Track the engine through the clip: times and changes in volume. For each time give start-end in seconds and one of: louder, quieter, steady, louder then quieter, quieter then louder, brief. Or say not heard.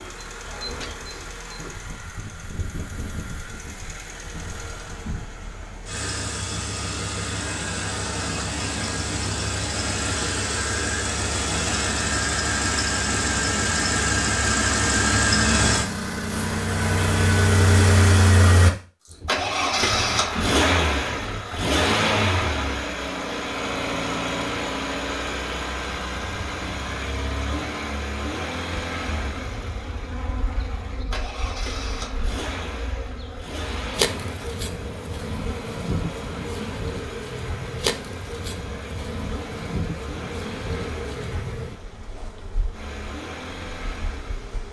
0.0-44.6 louder then quieter.